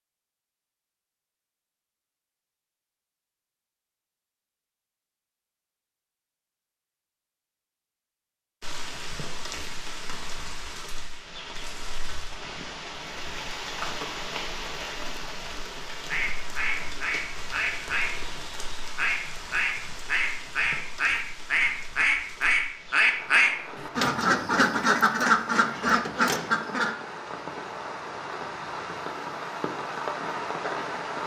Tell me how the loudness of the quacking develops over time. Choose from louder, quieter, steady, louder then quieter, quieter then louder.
louder.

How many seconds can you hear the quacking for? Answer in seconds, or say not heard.
11 s.